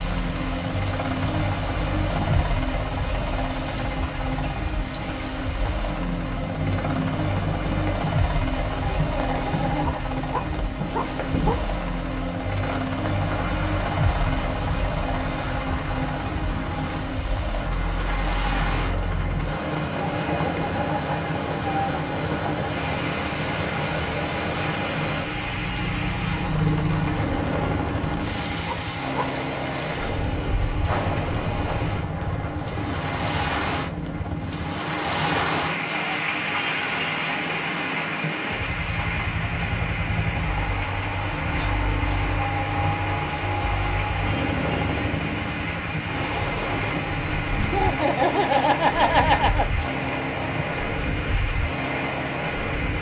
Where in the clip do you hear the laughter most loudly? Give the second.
49 s.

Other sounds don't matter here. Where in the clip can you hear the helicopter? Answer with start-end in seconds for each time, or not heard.
0.0-52.9.